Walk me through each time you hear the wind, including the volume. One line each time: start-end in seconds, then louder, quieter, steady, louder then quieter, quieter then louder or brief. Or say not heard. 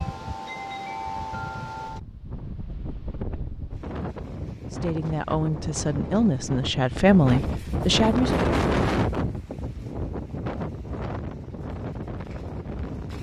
0.0-13.1 louder then quieter.